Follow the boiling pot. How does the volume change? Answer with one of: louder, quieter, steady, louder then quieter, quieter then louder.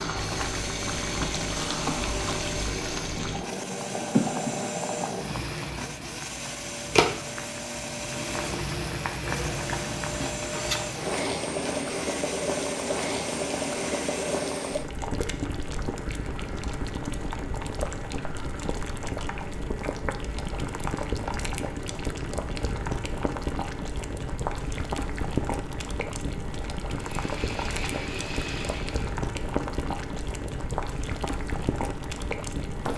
steady.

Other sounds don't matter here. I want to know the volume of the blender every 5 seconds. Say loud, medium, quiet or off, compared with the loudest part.
loud, loud, loud, off, off, loud, off.